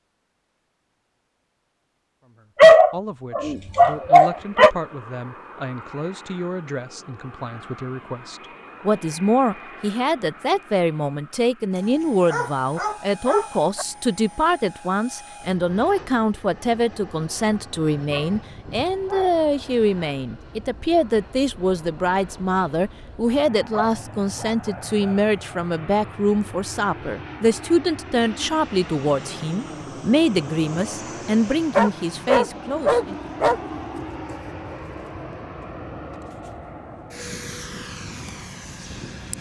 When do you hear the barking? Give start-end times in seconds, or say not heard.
2.5-4.7, 12.0-13.8, 17.4-19.4, 23.7-25.2, 31.8-33.6.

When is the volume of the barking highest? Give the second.
3 s.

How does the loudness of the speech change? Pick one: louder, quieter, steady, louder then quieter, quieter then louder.
louder.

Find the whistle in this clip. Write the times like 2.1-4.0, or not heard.
not heard.